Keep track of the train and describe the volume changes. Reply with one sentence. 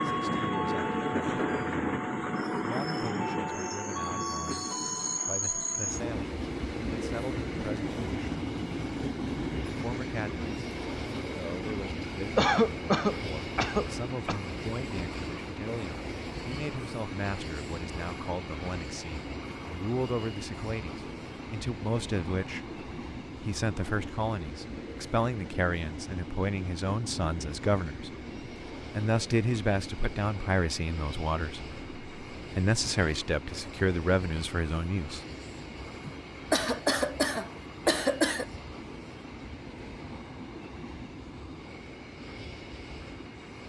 The loudness of the train goes down.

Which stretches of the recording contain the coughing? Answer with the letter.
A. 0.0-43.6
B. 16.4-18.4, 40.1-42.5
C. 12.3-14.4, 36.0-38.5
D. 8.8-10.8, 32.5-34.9
C.